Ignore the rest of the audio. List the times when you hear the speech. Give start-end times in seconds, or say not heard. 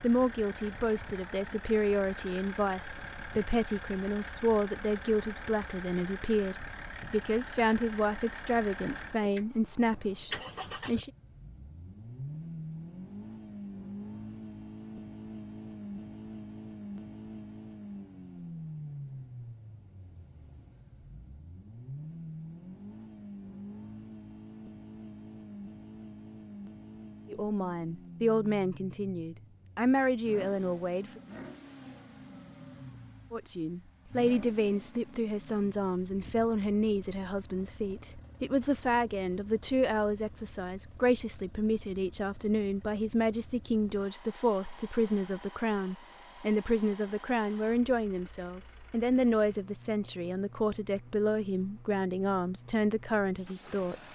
0.0-11.1, 27.2-31.2, 33.3-54.0.